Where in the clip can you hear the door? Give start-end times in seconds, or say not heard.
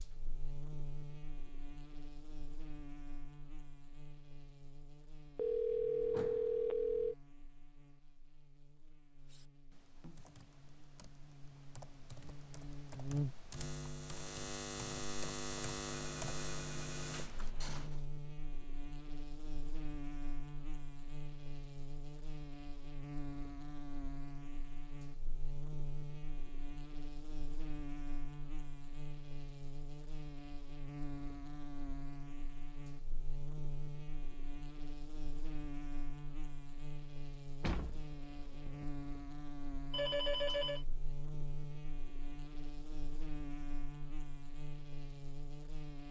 6.1-6.5, 17.1-18.1, 37.6-38.9.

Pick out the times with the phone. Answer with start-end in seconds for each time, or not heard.
5.3-7.2, 15.8-17.8, 39.9-40.9.